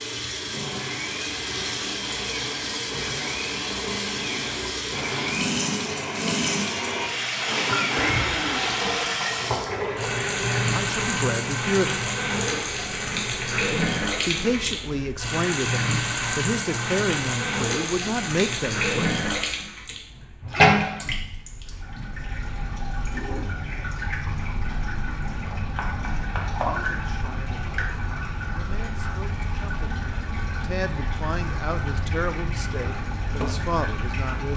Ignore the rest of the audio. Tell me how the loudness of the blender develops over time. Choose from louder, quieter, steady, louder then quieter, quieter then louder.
louder then quieter.